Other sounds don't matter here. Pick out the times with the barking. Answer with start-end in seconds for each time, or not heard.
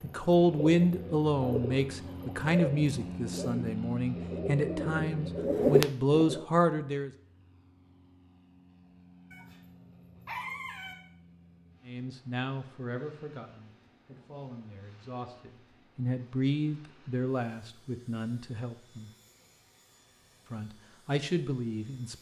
9.3-10.9.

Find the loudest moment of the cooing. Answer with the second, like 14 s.
6 s.